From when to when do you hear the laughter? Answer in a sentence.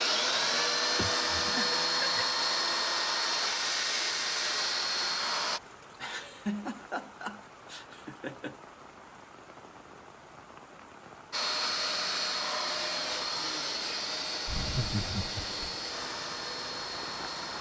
You can hear the laughter from 0.9 to 2.2 s, from 6.0 to 8.6 s and from 14.4 to 15.8 s.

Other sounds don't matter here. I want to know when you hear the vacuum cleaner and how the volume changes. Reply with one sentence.
You can hear the vacuum cleaner from 0.0 to 5.6 s, at a steady volume; and from 11.3 to 17.5 s, getting quieter.